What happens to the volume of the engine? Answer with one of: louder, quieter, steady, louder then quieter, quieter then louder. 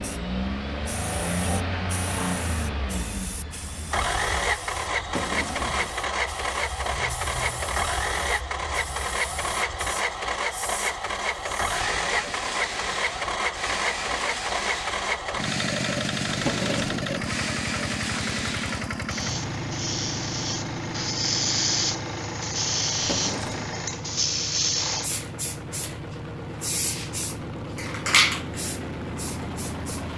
quieter.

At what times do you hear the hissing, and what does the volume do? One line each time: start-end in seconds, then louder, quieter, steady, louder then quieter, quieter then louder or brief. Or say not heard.
0.0-30.1 louder.